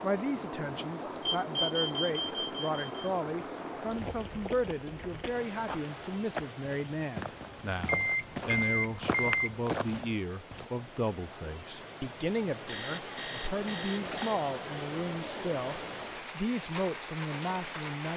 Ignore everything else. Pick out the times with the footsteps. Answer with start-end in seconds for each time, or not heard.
5.0-10.7.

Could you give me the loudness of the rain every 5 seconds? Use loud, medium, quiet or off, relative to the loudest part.
loud, medium, loud, loud.